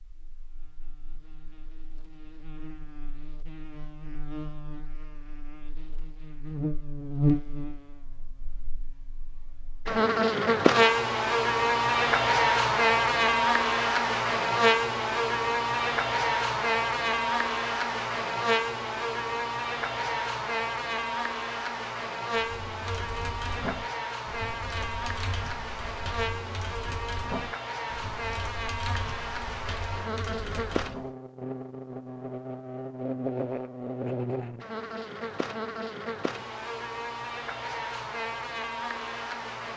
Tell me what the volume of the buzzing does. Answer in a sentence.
The volume of the buzzing goes up, then down.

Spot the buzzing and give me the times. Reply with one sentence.
The buzzing can be heard from 0.0 to 39.7 s.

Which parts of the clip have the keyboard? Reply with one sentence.
You can hear the keyboard from 22.6 to 31.1 s.